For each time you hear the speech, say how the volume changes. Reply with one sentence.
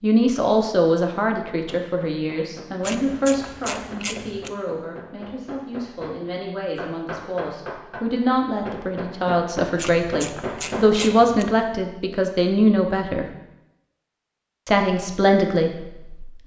The speech can be heard from 0.0 to 13.2 s, getting quieter then louder; and briefly from 14.7 to 16.4 s.